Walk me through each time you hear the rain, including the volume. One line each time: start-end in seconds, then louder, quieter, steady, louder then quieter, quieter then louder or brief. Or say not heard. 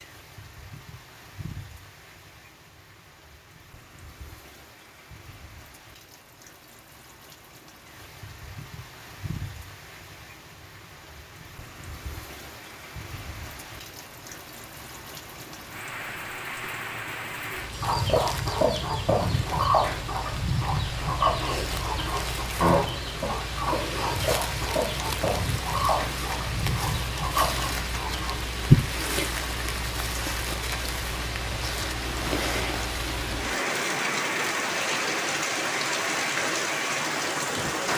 0.0-37.9 louder.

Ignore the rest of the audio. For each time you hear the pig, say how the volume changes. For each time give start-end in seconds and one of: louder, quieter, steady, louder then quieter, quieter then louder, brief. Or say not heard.
not heard.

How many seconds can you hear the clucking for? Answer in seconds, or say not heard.
11 s.